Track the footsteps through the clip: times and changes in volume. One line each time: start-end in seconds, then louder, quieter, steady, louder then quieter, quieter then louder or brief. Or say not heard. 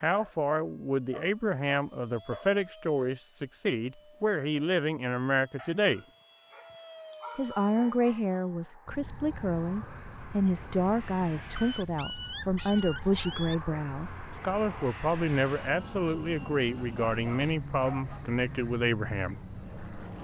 not heard.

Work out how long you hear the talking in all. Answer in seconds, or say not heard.
18 s.